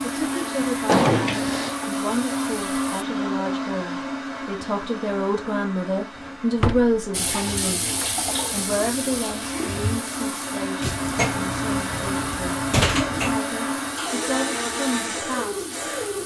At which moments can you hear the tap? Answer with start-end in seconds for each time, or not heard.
0.0-3.0, 7.1-16.2.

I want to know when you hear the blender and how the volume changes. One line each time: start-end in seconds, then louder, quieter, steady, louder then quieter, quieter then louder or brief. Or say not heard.
0.0-16.2 quieter then louder.